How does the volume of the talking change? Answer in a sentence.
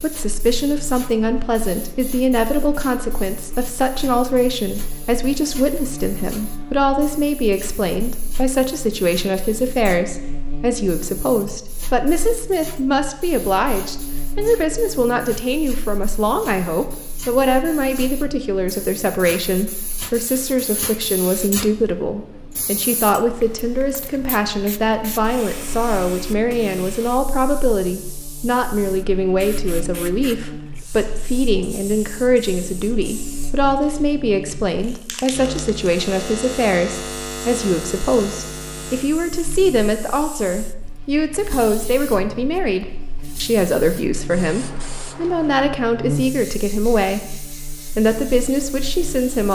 The loudness of the talking stays about the same.